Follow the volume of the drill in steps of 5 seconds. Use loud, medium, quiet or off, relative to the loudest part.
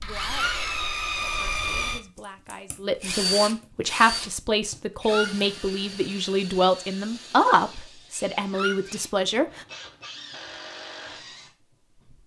loud, quiet, quiet.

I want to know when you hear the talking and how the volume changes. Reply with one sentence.
You can hear the talking from 0.0 to 9.7 s, getting louder.